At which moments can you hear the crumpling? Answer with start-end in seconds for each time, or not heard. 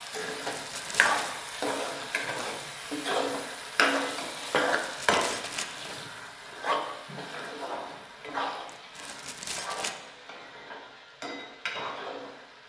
0.4-1.3, 4.7-6.0, 8.7-10.0.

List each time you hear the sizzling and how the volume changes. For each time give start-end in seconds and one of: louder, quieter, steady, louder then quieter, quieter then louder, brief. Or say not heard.
0.0-12.6 quieter.